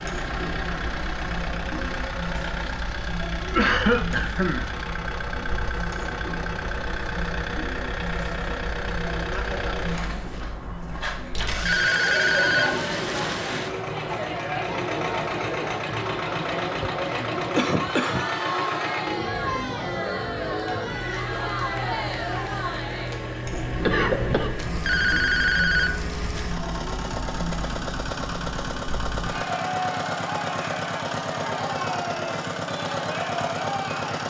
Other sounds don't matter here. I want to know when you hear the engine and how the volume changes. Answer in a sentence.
You can hear the engine from 0.0 to 34.2 s, at a steady volume.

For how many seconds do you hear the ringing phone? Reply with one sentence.
You can hear the ringing phone for 4 seconds altogether.